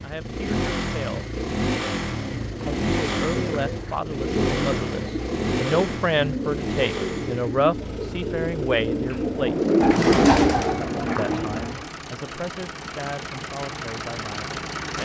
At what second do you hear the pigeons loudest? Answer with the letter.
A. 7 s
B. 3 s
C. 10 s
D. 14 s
C.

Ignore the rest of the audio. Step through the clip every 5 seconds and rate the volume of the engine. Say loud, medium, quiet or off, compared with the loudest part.
loud, medium, medium.